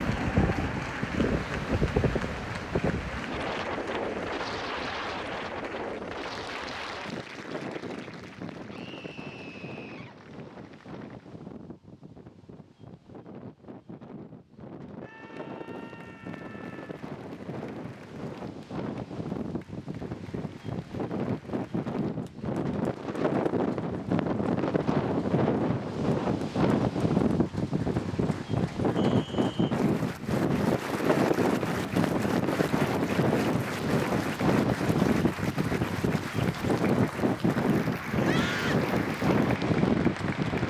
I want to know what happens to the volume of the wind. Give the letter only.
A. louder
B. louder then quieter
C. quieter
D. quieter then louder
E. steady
D.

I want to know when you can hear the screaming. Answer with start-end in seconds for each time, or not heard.
8.7-10.2, 15.0-17.1, 38.2-38.9.